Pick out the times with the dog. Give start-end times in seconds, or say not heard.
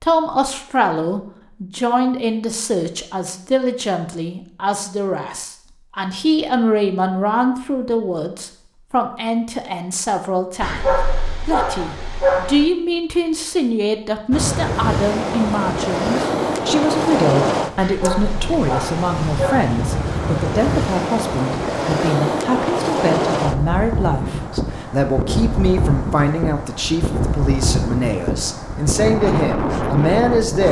10.6-12.7, 17.8-19.7.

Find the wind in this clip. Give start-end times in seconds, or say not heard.
14.3-30.6.